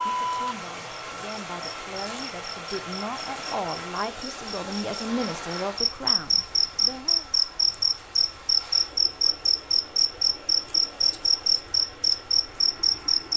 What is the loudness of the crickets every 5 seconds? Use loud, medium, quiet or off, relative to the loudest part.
medium, loud, loud.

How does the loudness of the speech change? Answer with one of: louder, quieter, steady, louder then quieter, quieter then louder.
louder.